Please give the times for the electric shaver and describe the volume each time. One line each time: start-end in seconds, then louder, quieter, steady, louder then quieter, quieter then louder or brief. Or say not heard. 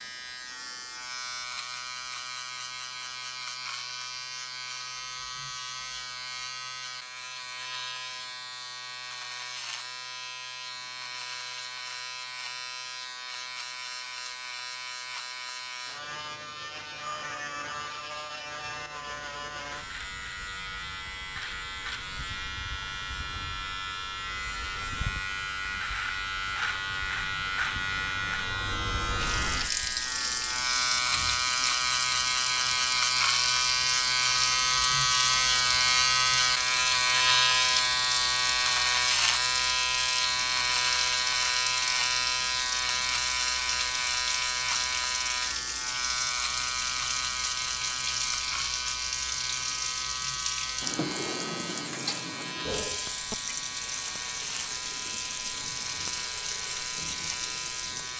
0.0-58.1 louder then quieter.